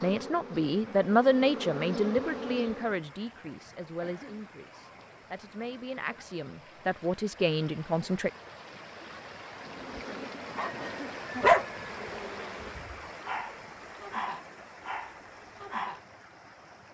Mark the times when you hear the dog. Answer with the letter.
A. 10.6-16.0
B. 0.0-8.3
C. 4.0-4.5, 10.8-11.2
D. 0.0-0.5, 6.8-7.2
A.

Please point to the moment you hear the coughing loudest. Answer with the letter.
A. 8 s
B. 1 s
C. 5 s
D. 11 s
D.